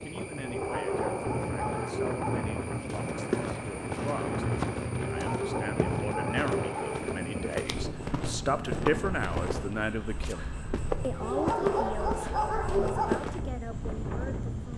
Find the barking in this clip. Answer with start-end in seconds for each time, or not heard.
0.4-2.5, 5.0-7.0, 11.2-13.2.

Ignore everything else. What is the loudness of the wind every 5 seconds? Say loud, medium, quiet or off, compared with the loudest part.
loud, loud, medium.